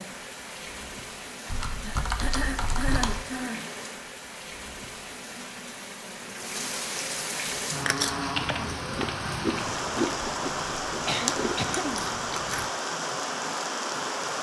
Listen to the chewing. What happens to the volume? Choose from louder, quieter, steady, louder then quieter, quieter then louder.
louder then quieter.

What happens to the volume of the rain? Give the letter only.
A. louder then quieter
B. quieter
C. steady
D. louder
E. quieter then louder
D.